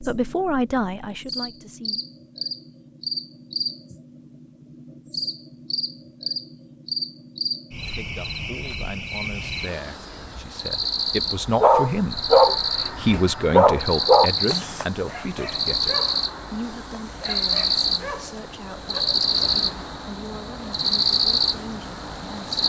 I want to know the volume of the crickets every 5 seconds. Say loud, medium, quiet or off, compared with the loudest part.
medium, medium, loud, loud, loud.